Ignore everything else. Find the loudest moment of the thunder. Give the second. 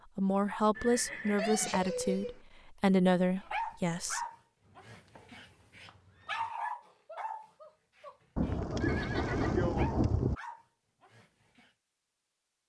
10 s.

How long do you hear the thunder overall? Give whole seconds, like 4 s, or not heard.
2 s.